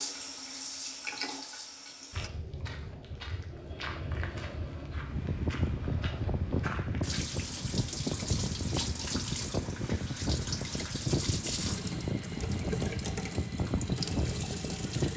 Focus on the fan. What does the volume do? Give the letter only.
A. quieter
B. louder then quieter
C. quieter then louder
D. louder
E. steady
E.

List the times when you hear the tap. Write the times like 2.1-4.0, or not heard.
0.0-2.3, 7.0-15.1.